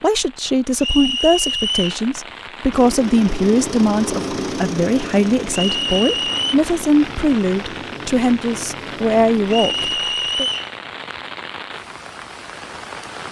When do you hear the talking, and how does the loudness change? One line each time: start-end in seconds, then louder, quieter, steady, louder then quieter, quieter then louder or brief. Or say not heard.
0.0-10.4 steady.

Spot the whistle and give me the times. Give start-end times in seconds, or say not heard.
0.8-2.0, 5.5-6.5, 9.4-10.7.